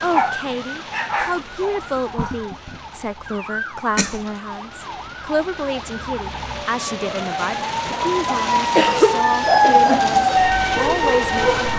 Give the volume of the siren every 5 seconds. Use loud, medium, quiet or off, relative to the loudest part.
quiet, loud, loud.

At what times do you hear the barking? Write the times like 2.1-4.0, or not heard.
0.0-2.8, 7.8-11.7.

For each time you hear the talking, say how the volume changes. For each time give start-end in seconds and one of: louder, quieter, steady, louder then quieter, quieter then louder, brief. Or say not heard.
0.0-11.7 steady.